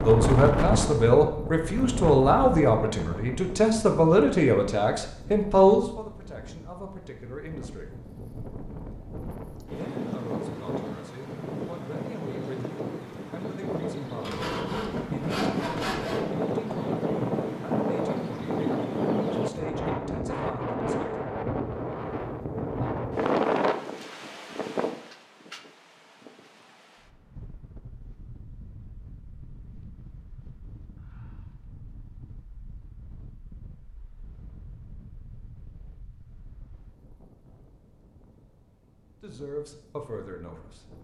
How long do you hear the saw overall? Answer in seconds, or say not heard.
2 s.